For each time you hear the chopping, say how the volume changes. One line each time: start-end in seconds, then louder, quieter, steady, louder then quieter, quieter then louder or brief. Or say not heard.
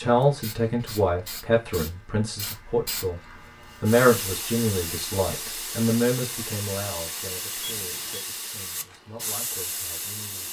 not heard.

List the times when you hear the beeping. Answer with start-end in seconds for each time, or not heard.
7.6-8.2.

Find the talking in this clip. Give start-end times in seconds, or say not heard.
0.0-10.4.